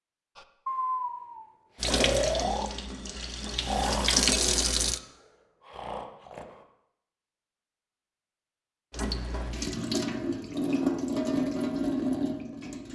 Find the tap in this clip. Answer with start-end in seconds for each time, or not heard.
1.8-5.0, 8.9-12.8.